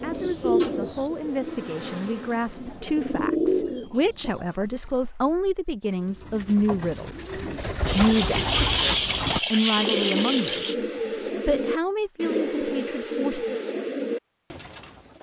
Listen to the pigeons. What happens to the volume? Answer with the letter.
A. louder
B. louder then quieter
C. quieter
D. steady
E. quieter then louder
D.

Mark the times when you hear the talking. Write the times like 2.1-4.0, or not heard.
0.0-10.8, 11.3-13.6.